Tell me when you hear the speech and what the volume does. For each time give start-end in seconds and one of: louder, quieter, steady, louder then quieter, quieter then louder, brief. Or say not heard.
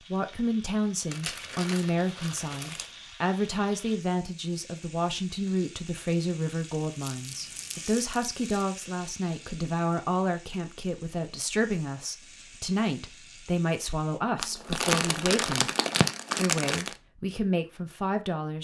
0.0-15.7 steady
16.4-18.5 brief.